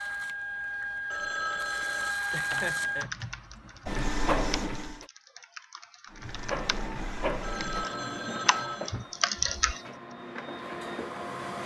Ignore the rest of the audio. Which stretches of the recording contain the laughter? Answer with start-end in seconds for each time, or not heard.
2.3-3.1.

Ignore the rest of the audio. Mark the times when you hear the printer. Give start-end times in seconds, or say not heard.
0.0-5.0, 6.1-11.6.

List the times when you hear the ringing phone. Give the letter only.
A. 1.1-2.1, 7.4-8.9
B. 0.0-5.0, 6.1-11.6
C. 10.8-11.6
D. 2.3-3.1
A.